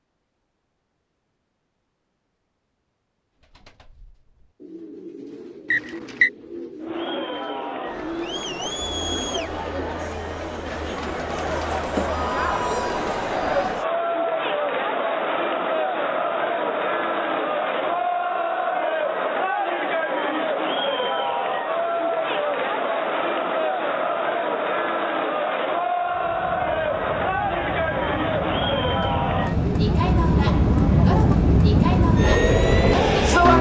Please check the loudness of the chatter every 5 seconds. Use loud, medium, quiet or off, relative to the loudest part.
off, medium, loud, loud, loud, loud, loud.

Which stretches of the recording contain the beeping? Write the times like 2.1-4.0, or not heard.
not heard.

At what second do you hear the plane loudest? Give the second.
33 s.